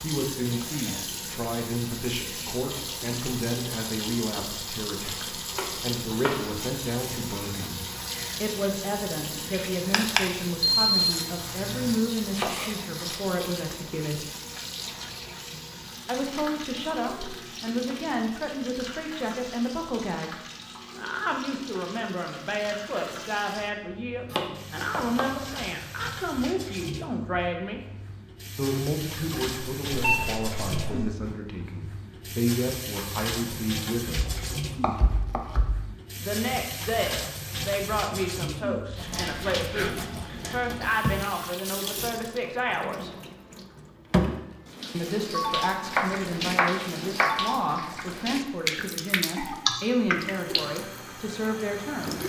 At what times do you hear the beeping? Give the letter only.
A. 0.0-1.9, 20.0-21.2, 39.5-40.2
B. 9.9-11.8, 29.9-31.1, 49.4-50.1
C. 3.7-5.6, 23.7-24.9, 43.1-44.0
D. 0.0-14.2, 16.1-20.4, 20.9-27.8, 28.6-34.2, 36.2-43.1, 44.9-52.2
B.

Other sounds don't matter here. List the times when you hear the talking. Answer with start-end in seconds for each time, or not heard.
0.0-14.2, 16.1-20.4, 20.9-27.8, 28.6-34.2, 36.2-43.1, 44.9-52.2.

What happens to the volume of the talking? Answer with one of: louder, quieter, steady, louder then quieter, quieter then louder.
steady.